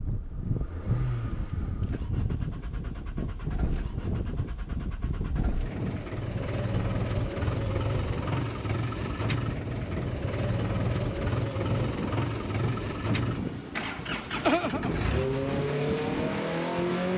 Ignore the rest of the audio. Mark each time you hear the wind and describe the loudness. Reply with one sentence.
The wind can be heard from 0.0 to 17.1 s, at a steady volume.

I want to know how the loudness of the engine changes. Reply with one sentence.
The volume of the engine goes up.